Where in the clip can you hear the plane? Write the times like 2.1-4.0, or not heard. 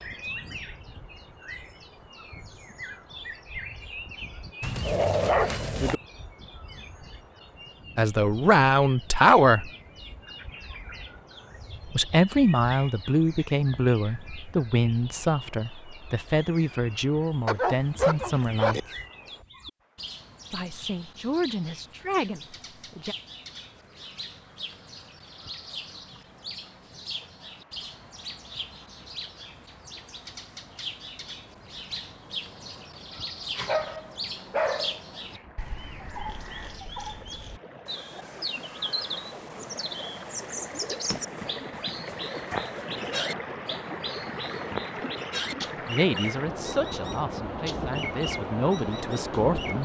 not heard.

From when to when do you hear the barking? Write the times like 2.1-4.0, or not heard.
4.6-6.0, 17.4-18.8, 33.5-35.4, 41.1-43.3.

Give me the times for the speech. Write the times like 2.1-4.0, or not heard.
8.0-9.7, 11.9-18.9, 20.5-23.1, 45.9-49.8.